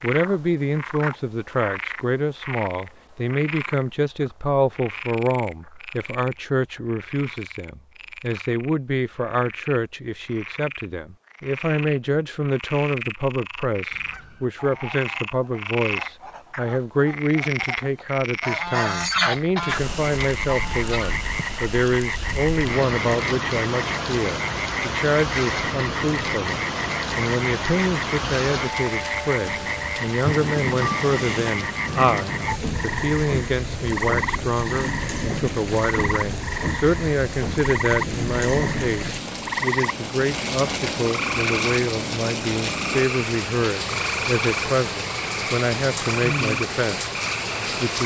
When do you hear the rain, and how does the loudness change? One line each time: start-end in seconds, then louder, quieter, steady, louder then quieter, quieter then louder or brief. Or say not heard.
19.6-48.0 steady.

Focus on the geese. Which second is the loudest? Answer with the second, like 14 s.
19 s.